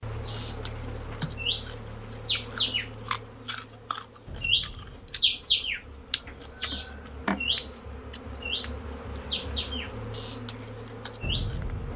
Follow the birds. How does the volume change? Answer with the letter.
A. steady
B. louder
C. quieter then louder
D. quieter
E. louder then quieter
E.